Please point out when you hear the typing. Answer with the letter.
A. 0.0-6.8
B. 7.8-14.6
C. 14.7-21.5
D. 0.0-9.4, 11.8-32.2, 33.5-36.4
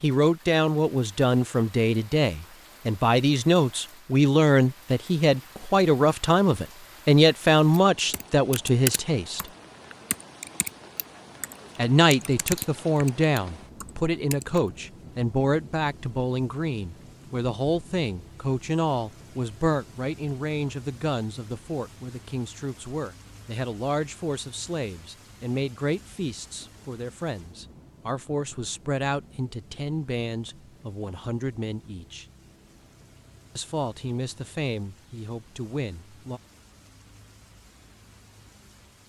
B.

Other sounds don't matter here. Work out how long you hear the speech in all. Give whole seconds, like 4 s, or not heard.
33 s.